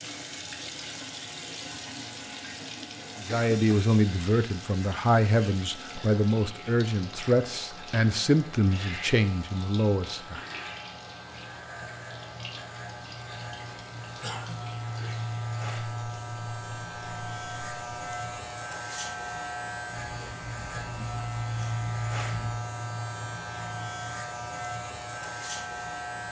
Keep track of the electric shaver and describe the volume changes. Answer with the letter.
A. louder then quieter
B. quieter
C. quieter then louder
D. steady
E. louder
E.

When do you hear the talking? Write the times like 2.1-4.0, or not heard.
3.2-10.4.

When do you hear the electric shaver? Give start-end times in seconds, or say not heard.
0.0-26.2.